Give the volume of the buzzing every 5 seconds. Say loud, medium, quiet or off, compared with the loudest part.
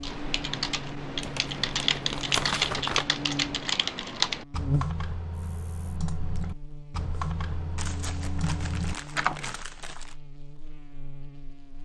loud, medium, quiet.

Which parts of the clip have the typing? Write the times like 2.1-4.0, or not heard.
0.0-9.6.